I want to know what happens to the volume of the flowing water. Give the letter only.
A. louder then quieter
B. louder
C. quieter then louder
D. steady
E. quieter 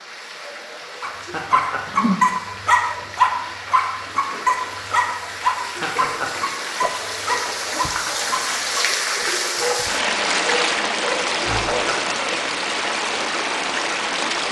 B.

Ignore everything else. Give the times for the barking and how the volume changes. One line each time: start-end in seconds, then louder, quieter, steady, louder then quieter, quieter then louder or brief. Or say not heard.
1.0-11.9 quieter.